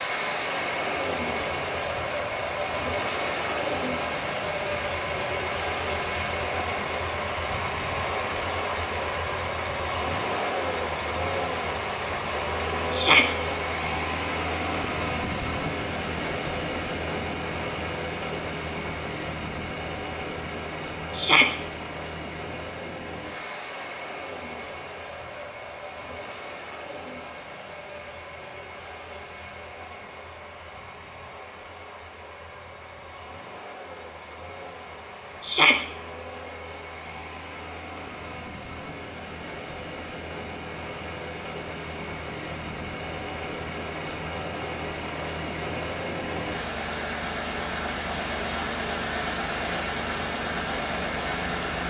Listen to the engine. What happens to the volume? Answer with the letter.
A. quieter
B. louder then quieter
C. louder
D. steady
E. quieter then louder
E.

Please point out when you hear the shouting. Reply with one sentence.
The shouting can be heard from 12.9 to 13.3 s, from 21.1 to 21.6 s and from 35.4 to 35.9 s.